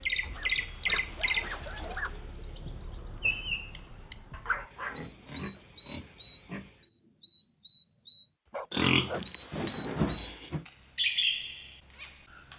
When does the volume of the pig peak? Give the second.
9 s.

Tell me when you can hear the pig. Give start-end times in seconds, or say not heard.
0.2-2.0, 4.7-6.9, 8.7-10.7.